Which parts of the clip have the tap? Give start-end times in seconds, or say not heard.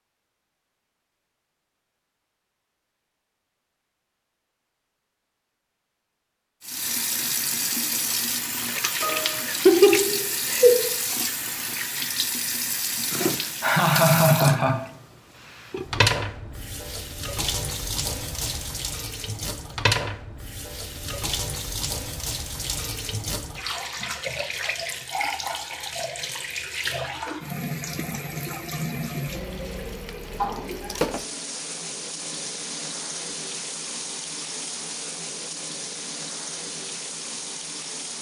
6.6-38.1.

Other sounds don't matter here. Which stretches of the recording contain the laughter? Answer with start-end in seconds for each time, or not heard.
9.0-10.9, 13.3-14.8, 30.4-31.0.